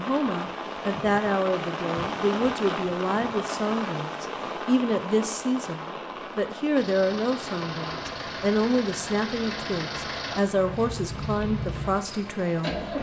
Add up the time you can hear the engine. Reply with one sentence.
You can hear the engine for 6 seconds altogether.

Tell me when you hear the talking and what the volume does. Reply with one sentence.
The talking can be heard from 0.0 to 12.8 s, at a steady volume.